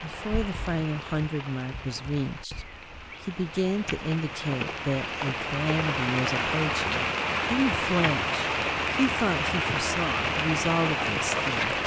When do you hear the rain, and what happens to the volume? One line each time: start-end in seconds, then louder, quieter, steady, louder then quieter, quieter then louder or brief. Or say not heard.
0.0-11.8 louder.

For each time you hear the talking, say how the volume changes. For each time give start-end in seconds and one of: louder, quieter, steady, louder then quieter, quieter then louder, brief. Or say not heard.
0.0-11.8 steady.